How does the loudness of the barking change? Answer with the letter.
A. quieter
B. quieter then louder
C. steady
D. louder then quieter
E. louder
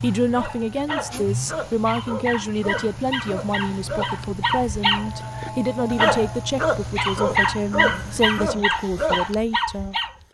E.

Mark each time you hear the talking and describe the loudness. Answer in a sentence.
You can hear the talking from 0.0 to 10.2 s, at a steady volume.